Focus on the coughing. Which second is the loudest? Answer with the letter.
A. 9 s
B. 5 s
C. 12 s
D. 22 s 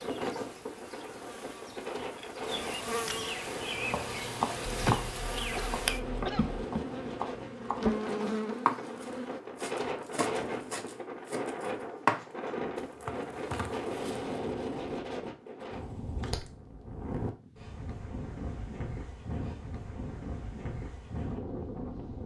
B.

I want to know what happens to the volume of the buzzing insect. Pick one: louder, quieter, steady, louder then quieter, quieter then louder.
louder.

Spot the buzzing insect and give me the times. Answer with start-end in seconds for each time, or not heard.
0.0-9.4.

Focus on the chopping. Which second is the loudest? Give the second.
12 s.